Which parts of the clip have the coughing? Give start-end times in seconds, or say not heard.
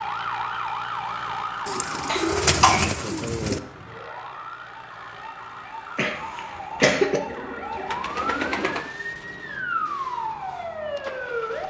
2.0-2.9, 6.0-7.2.